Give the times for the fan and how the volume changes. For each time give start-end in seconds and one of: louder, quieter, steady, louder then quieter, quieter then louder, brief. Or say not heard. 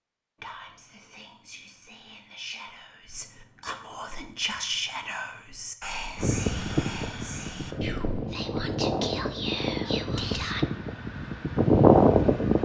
6.2-12.6 louder.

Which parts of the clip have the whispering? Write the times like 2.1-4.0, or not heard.
0.4-10.7.